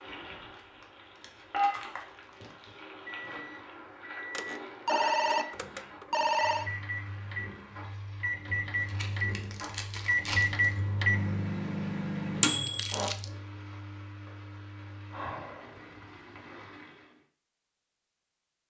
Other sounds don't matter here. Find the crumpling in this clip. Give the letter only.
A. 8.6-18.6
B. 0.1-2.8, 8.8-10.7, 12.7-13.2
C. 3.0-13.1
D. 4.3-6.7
B.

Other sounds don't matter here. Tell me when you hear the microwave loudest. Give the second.
11 s.